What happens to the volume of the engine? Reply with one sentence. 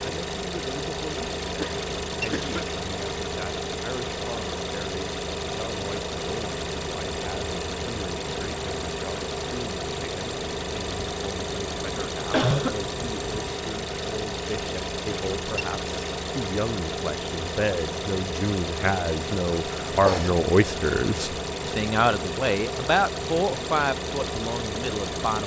The loudness of the engine stays about the same.